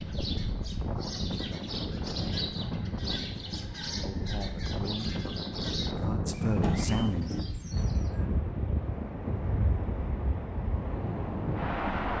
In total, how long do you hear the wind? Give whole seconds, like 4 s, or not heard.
12 s.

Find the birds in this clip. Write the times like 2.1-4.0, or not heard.
0.0-8.2.